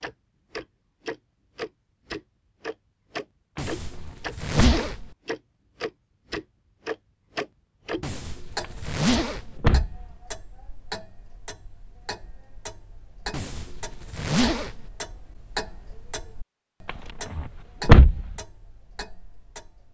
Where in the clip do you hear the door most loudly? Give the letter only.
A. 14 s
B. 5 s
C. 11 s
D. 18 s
D.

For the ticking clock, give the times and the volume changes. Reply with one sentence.
You can hear the ticking clock from 0.0 to 19.9 s, getting quieter.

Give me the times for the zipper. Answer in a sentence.
You can hear the zipper from 3.5 to 5.2 s, from 8.0 to 9.6 s and from 13.3 to 14.9 s.